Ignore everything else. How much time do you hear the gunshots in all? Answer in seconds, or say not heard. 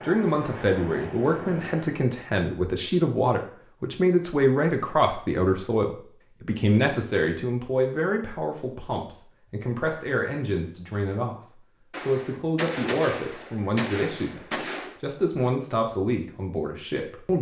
3 s.